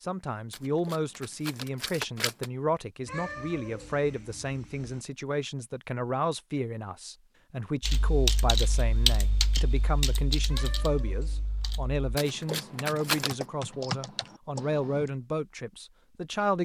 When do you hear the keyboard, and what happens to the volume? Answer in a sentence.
You can hear the keyboard from 7.8 to 15.1 s, getting quieter then louder.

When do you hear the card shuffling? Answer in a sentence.
You can hear the card shuffling from 0.5 to 2.5 s and from 12.2 to 13.3 s.